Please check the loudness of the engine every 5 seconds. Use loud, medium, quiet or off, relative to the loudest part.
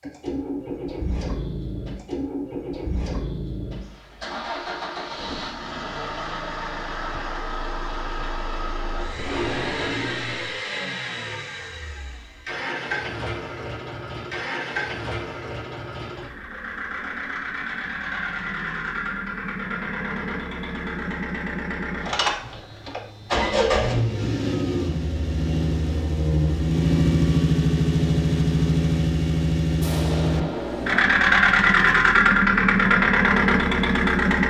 quiet, quiet, quiet, quiet, medium, loud, loud.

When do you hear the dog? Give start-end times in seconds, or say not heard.
not heard.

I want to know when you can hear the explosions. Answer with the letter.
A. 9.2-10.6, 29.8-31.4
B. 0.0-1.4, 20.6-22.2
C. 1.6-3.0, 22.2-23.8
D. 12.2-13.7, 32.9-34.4
A.